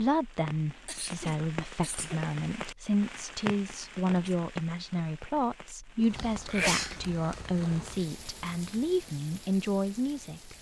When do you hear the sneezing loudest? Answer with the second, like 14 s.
7 s.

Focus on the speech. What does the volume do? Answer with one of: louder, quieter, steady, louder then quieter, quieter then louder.
steady.